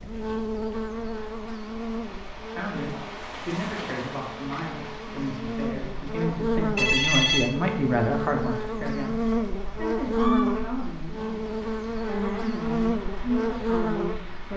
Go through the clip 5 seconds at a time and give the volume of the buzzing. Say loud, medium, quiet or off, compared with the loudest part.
medium, loud, loud.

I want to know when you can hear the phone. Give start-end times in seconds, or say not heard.
6.8-7.6.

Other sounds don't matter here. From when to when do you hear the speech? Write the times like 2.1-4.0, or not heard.
2.5-14.5.